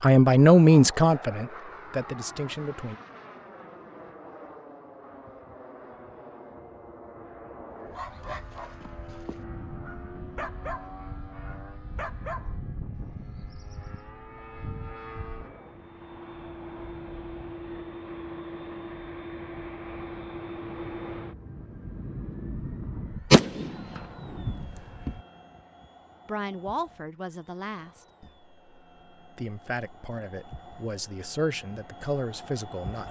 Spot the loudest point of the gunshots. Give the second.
23 s.